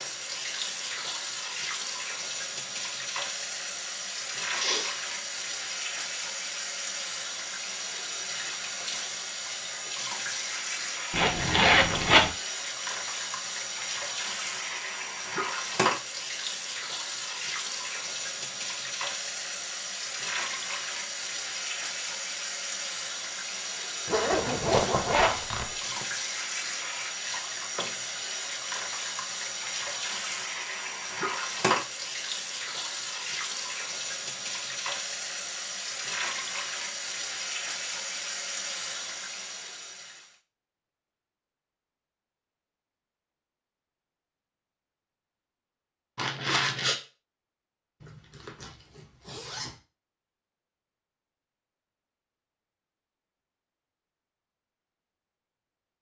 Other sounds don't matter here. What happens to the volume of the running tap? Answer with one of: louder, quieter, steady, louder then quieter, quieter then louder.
steady.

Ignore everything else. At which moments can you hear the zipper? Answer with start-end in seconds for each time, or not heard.
11.1-12.3, 24.1-26.1, 48.0-49.8.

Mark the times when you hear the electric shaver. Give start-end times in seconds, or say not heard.
not heard.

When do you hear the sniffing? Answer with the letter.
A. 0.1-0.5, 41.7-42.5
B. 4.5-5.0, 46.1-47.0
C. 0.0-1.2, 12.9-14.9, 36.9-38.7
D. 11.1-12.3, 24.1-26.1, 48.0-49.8
B.